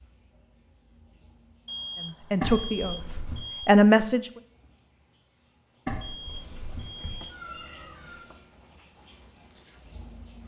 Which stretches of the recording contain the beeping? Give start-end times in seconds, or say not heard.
1.6-3.7, 6.0-7.4.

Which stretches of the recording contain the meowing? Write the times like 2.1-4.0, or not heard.
2.4-3.5, 5.8-8.3.